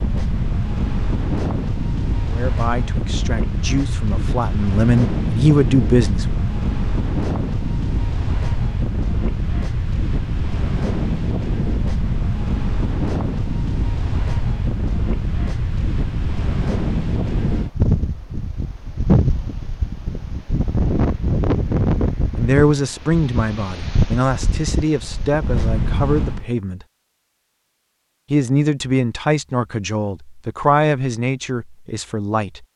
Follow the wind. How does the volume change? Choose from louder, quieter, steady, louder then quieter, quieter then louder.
steady.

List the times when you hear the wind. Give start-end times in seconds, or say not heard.
0.0-26.4.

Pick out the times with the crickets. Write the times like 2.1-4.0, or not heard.
not heard.